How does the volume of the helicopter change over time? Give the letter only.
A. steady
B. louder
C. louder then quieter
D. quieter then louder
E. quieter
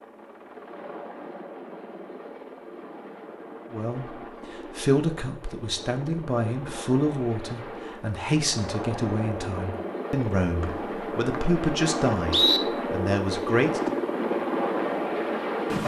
B.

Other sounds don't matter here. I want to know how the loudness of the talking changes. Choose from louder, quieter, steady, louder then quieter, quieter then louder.
steady.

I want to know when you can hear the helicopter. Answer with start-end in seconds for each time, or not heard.
0.0-15.8.